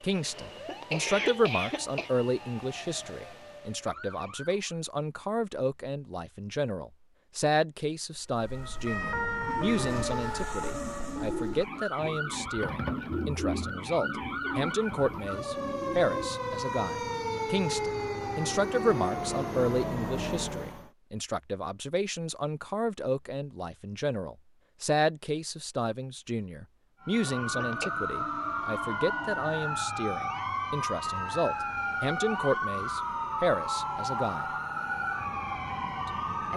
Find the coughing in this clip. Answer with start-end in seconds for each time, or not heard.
0.2-2.1, 27.1-27.9.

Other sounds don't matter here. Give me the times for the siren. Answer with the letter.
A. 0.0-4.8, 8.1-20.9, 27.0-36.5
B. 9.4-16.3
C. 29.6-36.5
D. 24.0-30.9
A.